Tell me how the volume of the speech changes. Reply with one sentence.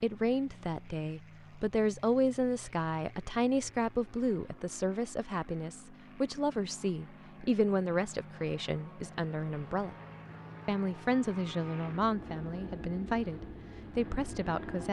The volume of the speech stays about the same.